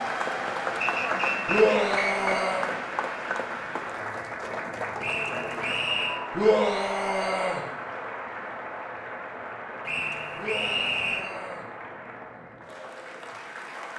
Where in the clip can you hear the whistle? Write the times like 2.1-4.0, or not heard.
0.8-2.1, 5.0-6.2, 9.8-11.2.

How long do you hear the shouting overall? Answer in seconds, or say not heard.
4 s.